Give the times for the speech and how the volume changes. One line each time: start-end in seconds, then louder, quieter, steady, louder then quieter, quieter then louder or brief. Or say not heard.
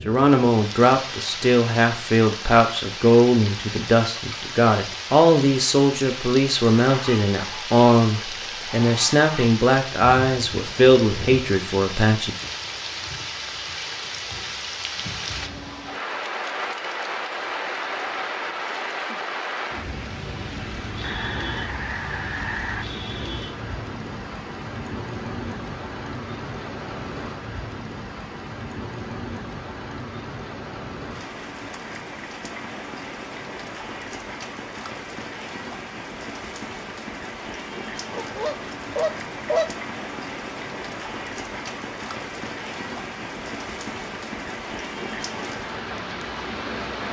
0.1-12.3 steady.